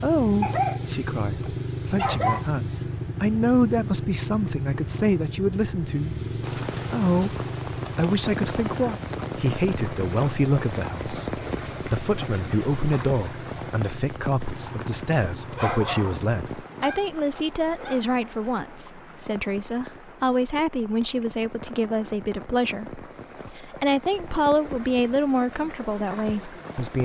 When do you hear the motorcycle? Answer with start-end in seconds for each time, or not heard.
0.0-16.6.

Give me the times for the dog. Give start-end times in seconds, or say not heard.
0.4-2.5, 15.5-18.0.